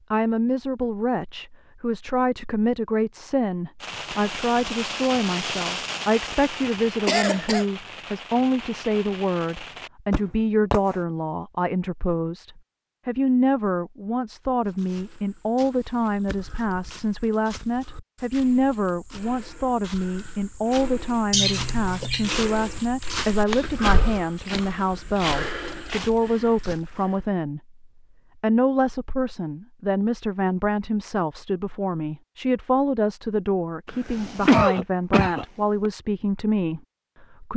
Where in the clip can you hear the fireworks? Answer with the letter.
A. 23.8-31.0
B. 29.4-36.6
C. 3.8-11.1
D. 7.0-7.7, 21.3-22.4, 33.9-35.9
C.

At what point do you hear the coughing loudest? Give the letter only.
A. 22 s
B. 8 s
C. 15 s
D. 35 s
D.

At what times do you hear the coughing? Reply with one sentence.
You can hear the coughing from 7.0 to 7.7 s, from 21.3 to 22.4 s and from 33.9 to 35.9 s.